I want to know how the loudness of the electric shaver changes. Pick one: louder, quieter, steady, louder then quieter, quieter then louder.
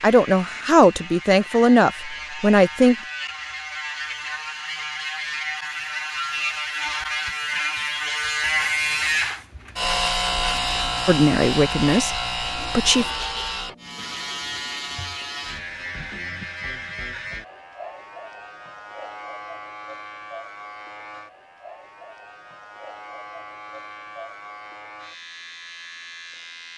louder then quieter.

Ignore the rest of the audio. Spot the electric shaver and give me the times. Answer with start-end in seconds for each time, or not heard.
0.0-26.7.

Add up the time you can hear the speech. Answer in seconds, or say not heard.
5 s.